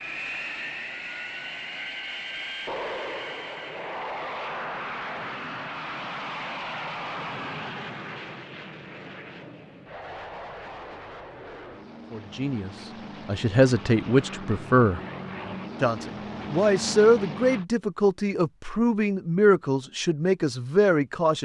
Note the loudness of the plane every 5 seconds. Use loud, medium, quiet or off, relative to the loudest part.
loud, loud, medium, loud, off.